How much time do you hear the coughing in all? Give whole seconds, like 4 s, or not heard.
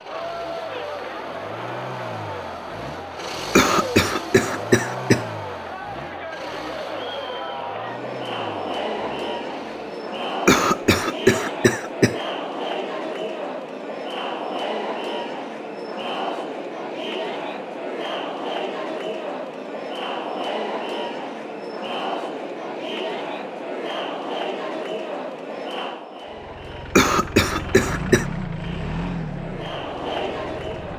5 s.